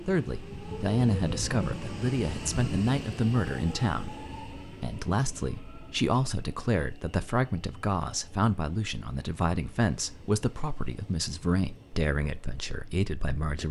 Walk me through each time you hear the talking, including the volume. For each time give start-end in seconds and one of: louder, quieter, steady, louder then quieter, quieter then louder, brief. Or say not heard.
0.1-13.6 steady.